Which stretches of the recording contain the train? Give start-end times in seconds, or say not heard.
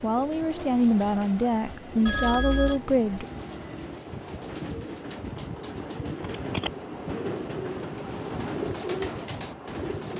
0.0-10.1.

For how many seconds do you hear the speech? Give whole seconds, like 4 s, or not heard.
3 s.